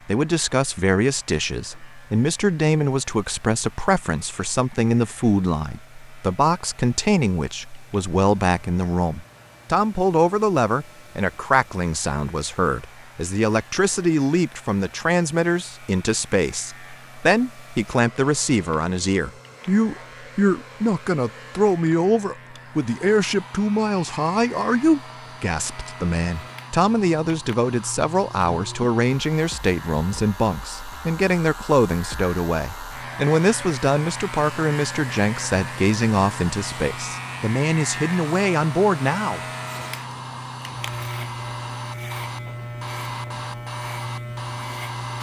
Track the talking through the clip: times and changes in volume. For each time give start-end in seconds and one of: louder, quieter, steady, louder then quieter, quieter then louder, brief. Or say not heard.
0.1-39.4 steady.